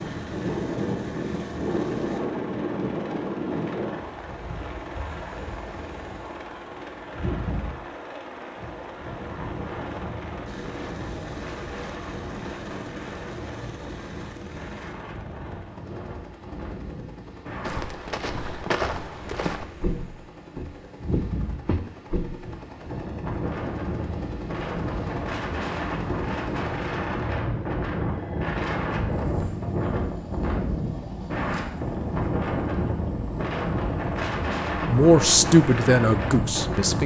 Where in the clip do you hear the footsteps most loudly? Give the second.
19 s.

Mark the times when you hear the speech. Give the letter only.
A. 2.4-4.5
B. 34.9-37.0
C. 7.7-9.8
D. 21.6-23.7
B.